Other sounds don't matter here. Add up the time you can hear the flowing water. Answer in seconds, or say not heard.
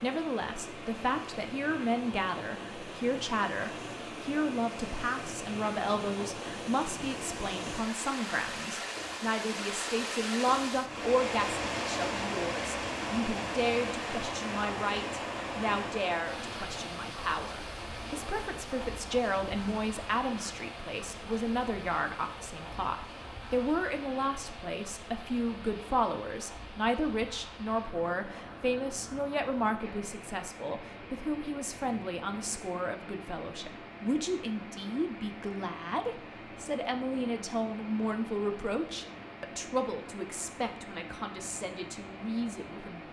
43 s.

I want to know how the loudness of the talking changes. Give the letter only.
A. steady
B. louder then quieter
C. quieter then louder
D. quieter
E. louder
A.